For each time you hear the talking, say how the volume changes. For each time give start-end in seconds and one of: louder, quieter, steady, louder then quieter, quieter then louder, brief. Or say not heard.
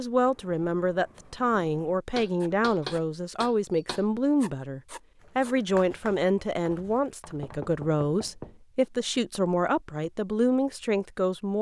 0.0-11.5 steady.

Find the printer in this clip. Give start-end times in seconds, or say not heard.
not heard.